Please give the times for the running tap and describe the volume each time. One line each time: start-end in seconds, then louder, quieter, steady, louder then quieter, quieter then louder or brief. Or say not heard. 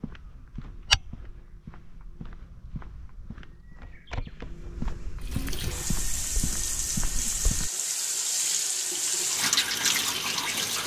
5.2-10.8 louder.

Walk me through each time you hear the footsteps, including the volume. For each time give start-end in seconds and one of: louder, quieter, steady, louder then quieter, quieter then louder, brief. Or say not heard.
0.0-7.7 quieter then louder.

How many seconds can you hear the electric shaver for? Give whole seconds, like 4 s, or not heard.
not heard.